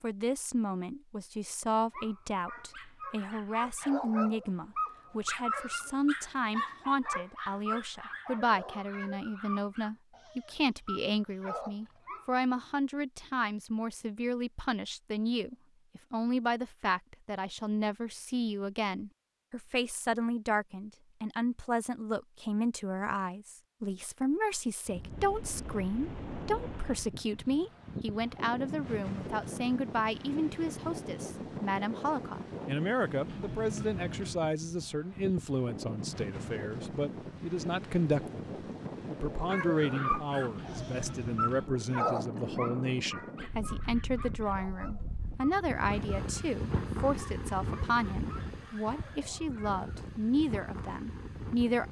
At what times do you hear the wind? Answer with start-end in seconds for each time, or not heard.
24.9-51.8.